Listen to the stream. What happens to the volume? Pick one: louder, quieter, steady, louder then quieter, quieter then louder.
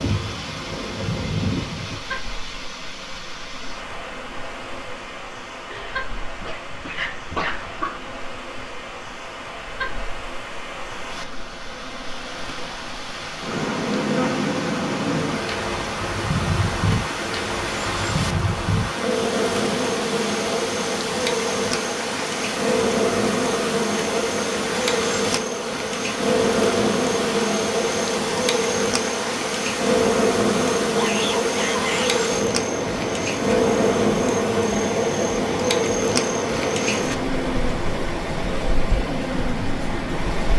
louder.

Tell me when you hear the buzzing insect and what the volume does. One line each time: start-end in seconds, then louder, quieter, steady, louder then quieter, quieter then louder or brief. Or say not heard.
0.0-40.5 louder.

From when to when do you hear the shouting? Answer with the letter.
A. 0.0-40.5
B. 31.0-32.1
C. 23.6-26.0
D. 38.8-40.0
B.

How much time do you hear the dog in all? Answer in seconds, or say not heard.
2 s.